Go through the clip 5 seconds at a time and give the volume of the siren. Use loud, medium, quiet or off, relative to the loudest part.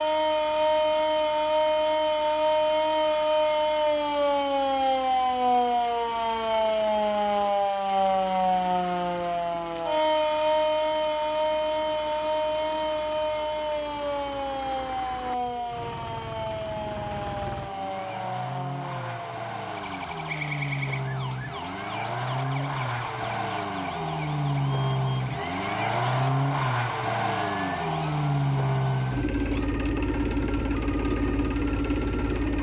loud, loud, loud, medium, quiet, quiet, quiet.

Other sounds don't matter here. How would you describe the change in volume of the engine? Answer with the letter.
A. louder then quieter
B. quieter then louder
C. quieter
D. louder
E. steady
D.